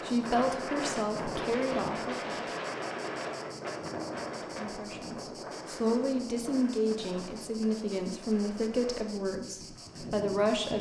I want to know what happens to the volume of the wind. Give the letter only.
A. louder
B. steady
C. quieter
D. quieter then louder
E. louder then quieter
C.